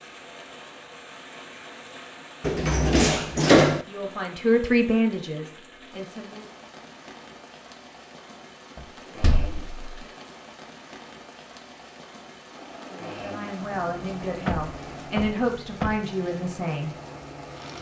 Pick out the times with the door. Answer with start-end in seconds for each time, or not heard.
2.4-3.9, 8.8-10.1, 14.4-16.0.